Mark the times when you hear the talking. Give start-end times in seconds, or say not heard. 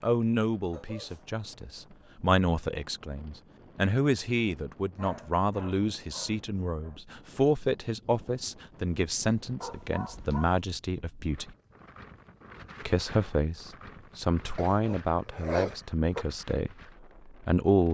0.0-11.6, 12.8-17.8.